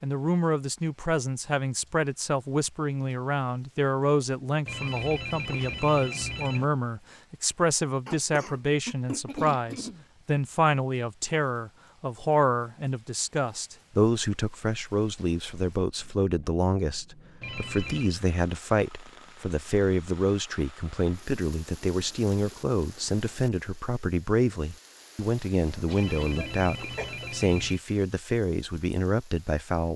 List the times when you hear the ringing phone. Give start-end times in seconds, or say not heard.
4.7-6.7, 17.4-18.1, 25.9-27.8.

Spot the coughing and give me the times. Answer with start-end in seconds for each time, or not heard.
8.1-10.1, 25.7-27.3.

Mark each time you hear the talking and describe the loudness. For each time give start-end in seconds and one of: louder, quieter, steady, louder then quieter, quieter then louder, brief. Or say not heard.
0.0-29.9 steady.